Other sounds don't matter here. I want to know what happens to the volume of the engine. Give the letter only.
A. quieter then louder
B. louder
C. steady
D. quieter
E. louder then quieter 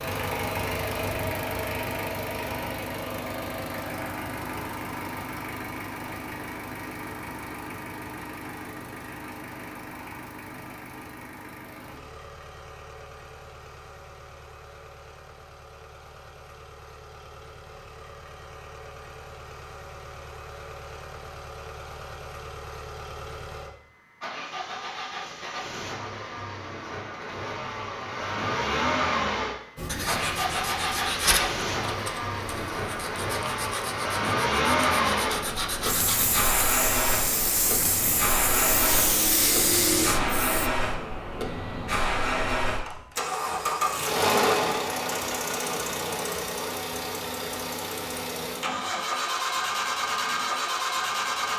A.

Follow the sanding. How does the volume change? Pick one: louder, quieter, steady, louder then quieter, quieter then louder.
quieter then louder.